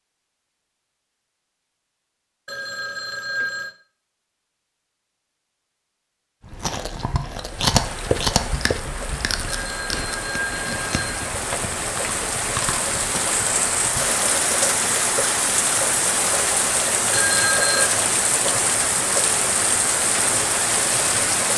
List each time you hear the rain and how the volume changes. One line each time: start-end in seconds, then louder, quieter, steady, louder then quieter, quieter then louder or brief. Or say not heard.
7.3-21.5 louder.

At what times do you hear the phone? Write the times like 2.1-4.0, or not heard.
2.5-3.8, 9.4-11.2, 17.1-17.9.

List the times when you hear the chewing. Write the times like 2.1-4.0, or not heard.
6.4-14.1.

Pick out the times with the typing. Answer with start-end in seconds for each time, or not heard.
not heard.